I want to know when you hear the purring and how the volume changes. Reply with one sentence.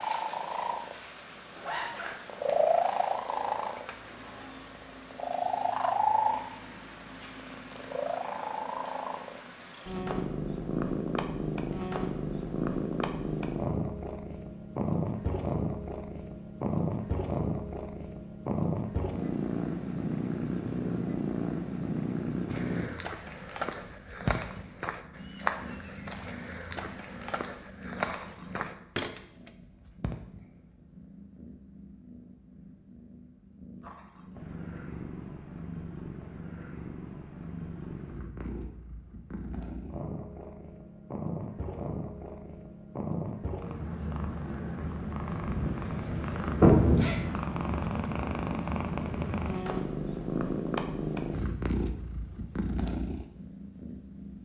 The purring can be heard from 0.0 to 54.4 s, getting quieter then louder.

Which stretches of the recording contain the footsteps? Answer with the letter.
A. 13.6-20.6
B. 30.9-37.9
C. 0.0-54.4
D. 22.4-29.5
D.